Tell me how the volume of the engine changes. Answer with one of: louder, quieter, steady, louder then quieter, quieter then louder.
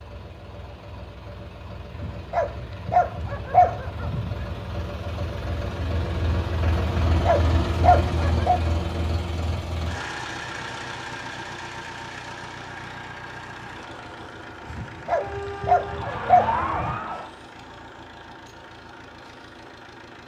louder then quieter.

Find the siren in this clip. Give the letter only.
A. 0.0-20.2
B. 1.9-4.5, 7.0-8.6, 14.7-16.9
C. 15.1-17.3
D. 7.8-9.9
C.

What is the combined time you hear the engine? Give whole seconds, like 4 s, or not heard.
20 s.